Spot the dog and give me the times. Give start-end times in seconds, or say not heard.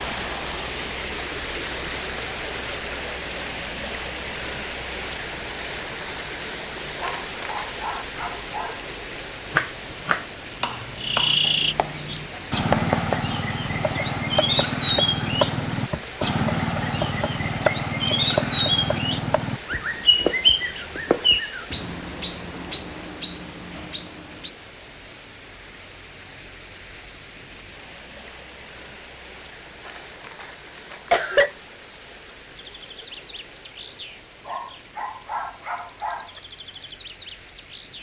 7.0-8.9, 34.5-36.4.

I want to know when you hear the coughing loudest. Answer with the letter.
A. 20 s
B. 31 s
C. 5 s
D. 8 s
B.